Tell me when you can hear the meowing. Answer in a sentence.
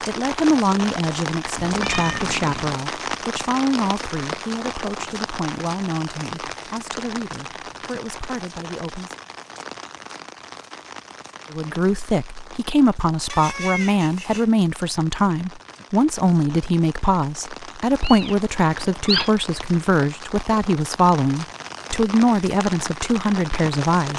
The meowing can be heard from 1.6 to 2.8 s, from 13.2 to 14.4 s and from 18.0 to 19.3 s.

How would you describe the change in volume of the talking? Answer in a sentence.
The volume of the talking goes down, then up.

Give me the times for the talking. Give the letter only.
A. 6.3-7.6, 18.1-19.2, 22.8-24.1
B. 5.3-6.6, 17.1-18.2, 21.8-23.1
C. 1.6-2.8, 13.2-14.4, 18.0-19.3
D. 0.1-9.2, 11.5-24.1
D.